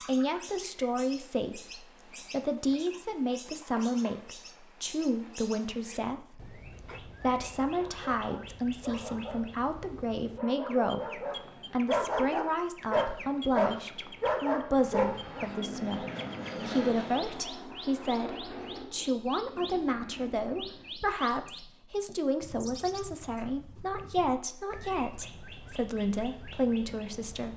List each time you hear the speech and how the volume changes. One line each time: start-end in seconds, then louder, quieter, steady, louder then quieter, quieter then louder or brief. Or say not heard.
0.0-27.5 steady.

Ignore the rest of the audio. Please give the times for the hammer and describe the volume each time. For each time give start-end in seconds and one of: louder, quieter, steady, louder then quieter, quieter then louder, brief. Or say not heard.
not heard.